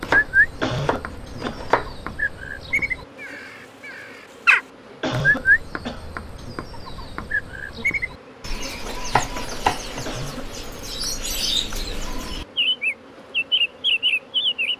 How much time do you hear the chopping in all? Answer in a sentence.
The chopping can be heard for 3 seconds in total.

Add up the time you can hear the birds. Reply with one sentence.
You can hear the birds for 15 seconds altogether.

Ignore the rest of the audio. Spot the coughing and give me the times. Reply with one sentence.
The coughing can be heard from 0.6 to 1.6 s, from 5.0 to 6.0 s and from 10.1 to 10.5 s.